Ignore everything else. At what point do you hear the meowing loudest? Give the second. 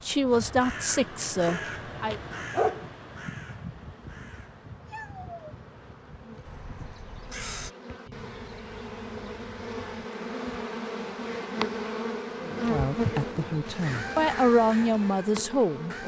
5 s.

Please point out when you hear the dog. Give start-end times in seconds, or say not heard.
1.4-2.9.